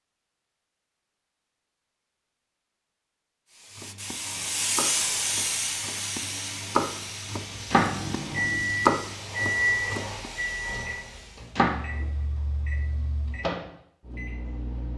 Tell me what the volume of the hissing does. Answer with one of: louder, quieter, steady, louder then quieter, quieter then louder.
quieter.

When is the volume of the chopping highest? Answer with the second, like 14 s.
9 s.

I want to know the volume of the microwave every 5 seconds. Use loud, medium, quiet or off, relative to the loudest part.
off, loud, medium.